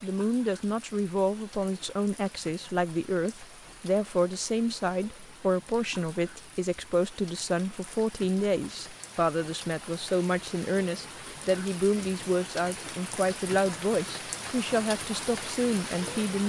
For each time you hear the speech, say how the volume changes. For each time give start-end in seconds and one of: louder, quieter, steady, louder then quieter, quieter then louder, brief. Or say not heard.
0.0-16.4 steady.